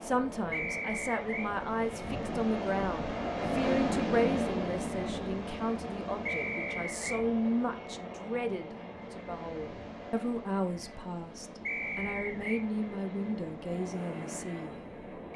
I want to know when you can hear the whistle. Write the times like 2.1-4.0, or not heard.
0.5-1.5, 6.2-7.2, 11.7-12.7.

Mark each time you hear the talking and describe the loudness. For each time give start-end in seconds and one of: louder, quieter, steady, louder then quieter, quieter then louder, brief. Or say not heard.
0.0-15.3 steady.